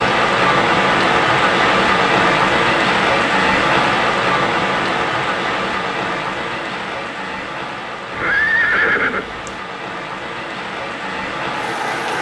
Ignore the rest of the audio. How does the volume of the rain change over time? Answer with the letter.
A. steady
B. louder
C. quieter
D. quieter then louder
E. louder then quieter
C.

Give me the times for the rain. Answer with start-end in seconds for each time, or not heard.
0.0-12.1.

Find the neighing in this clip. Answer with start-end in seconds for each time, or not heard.
8.1-9.6.